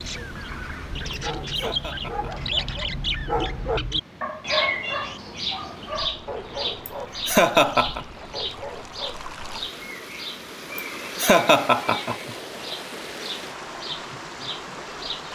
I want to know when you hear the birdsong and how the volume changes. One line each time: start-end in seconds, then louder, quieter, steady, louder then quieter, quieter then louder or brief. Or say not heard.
0.0-15.2 quieter.